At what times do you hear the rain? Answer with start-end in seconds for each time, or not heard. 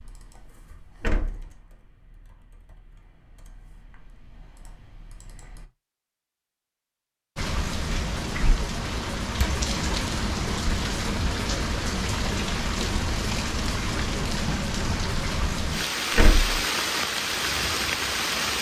7.3-18.5.